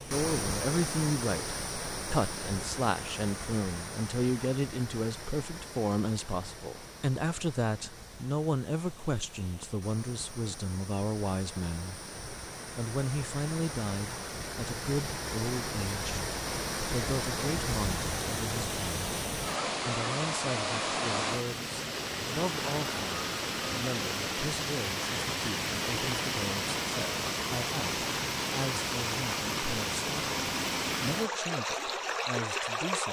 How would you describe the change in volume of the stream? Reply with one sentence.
The loudness of the stream goes down, then up.